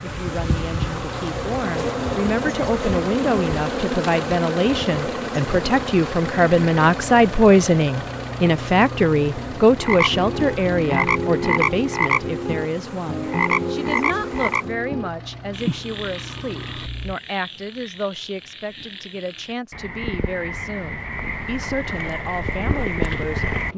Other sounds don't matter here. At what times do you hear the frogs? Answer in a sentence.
You can hear the frogs from 9.8 to 23.7 s.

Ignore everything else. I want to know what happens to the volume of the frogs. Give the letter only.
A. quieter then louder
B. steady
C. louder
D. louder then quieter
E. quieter
A.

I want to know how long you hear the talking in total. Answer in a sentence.
The talking can be heard for 24 seconds in total.